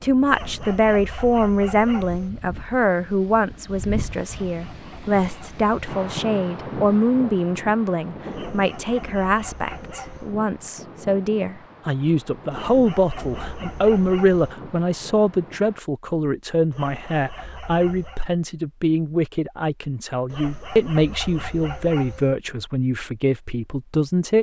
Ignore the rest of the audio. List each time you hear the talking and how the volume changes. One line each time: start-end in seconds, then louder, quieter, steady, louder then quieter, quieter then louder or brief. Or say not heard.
0.0-24.3 steady.